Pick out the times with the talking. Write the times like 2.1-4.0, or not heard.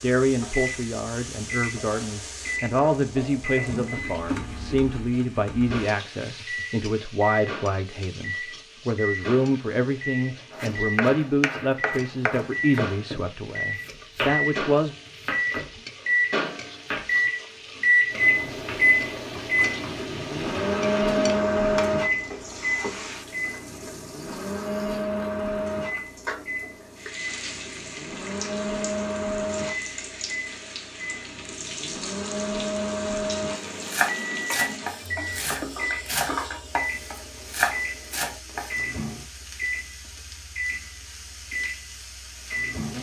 0.0-14.9.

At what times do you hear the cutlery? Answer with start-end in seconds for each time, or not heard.
not heard.